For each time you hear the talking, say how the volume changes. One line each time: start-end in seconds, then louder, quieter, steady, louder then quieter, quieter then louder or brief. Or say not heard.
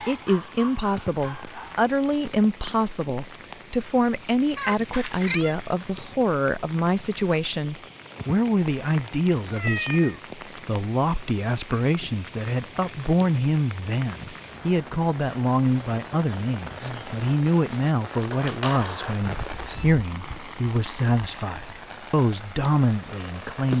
0.1-23.7 steady.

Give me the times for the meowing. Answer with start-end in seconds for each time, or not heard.
4.5-5.5, 9.5-10.2, 18.1-19.9.